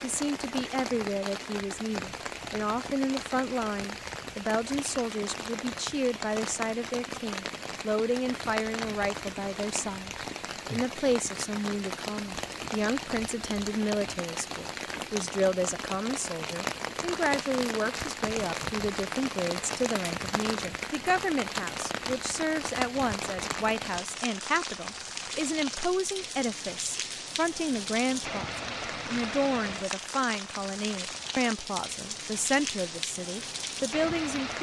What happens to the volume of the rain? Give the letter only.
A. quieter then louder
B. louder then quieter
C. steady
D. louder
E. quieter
C.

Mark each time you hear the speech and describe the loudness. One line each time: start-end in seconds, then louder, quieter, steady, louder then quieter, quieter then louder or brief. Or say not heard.
0.0-34.5 steady.